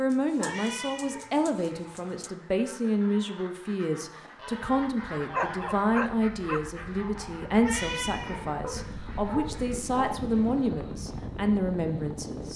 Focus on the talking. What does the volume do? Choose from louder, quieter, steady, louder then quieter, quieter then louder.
steady.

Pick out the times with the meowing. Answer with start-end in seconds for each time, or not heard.
0.3-1.2, 7.5-8.4.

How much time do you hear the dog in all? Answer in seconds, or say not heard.
5 s.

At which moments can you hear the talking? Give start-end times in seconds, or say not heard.
0.0-12.5.